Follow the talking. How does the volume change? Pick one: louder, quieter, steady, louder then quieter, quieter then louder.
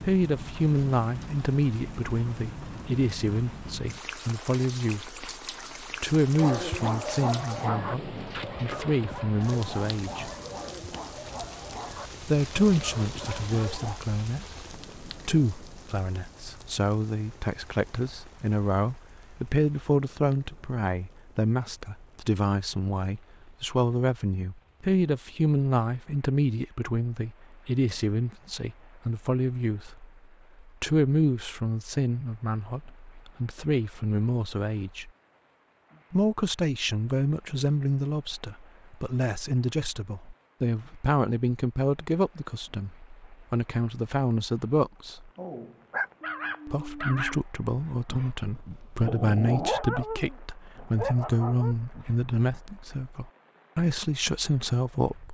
steady.